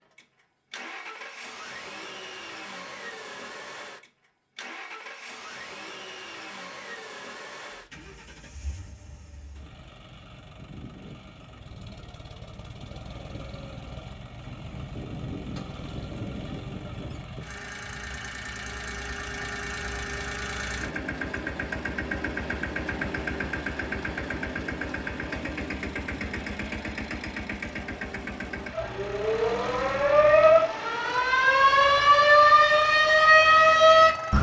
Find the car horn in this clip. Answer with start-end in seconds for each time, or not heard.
not heard.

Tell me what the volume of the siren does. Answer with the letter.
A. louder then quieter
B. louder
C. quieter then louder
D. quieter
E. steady
B.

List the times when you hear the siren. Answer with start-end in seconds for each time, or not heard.
28.7-34.3.